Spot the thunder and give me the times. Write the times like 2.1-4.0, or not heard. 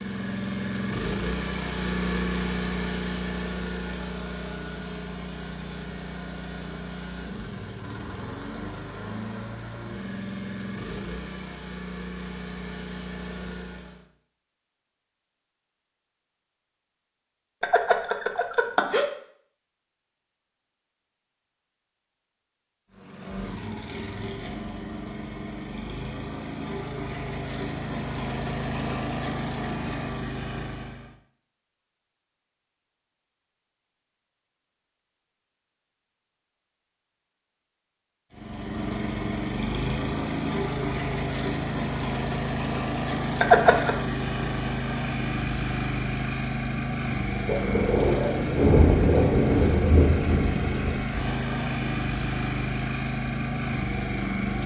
47.5-51.0.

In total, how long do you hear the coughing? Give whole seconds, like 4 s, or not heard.
2 s.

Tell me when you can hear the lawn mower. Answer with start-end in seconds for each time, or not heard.
0.0-14.1, 22.9-31.1, 38.3-54.6.